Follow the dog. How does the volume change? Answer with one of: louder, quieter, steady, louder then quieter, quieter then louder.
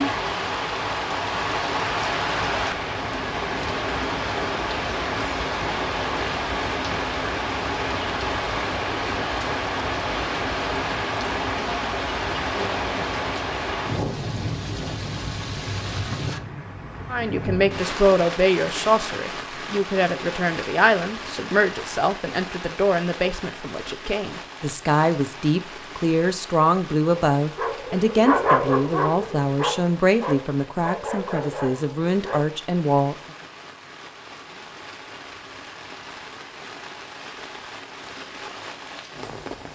quieter.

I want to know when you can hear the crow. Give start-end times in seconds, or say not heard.
not heard.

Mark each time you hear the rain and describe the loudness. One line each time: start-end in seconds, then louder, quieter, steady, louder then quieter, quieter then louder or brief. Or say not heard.
0.0-39.7 quieter.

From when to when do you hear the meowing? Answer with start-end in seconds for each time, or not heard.
not heard.